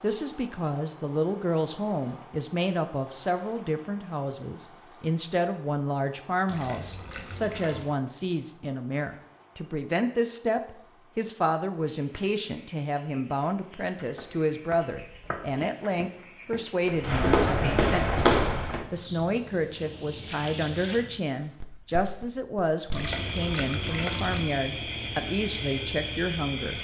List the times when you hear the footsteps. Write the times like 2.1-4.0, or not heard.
14.1-18.9.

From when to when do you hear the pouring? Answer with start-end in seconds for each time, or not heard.
6.5-8.0, 22.9-24.5.